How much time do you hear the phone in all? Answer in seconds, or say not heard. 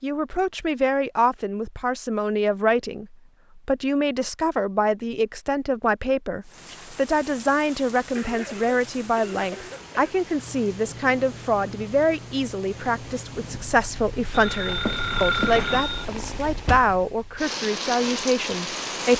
2 s.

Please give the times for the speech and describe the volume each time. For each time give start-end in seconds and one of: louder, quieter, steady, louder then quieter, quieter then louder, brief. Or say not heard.
0.0-19.1 steady.